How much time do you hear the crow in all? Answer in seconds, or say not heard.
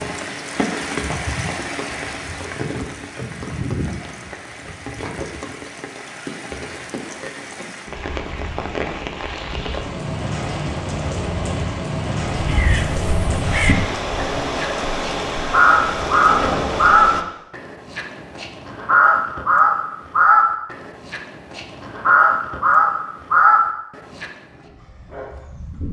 12 s.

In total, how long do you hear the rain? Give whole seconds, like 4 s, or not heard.
17 s.